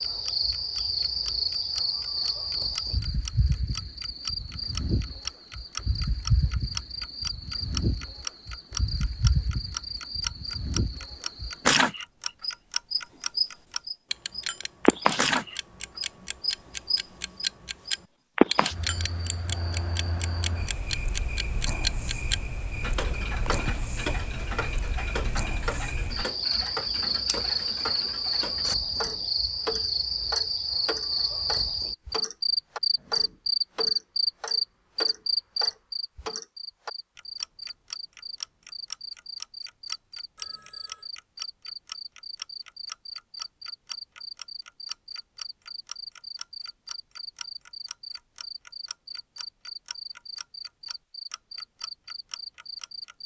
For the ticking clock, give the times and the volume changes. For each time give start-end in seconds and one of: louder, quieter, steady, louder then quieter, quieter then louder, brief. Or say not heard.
0.0-53.1 quieter.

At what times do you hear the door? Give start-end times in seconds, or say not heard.
not heard.